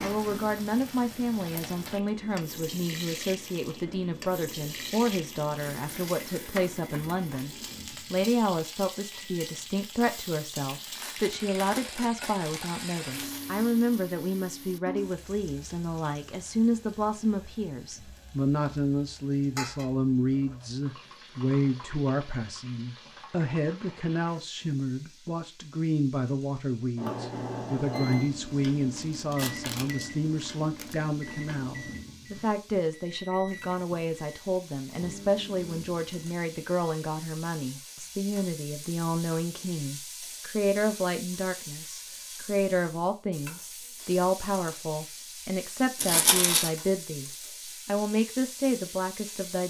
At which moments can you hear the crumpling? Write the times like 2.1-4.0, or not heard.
10.7-13.4, 28.9-30.9, 46.0-46.7.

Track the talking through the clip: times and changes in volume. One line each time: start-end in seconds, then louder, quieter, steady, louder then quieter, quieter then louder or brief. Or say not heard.
0.0-49.6 steady.